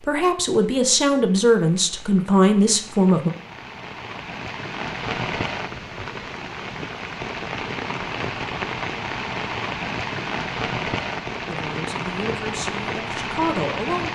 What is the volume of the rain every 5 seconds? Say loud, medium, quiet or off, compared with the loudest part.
medium, loud, loud.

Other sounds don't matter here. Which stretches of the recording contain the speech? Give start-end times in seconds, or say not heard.
0.0-3.3, 11.4-14.1.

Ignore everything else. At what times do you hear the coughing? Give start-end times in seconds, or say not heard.
not heard.